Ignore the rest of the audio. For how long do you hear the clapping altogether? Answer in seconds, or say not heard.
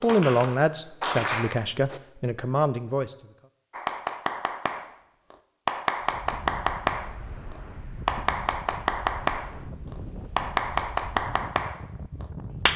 11 s.